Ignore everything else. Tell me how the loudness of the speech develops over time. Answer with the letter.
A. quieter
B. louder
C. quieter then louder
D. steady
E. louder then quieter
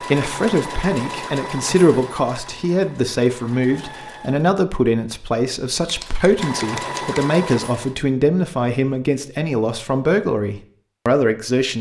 D.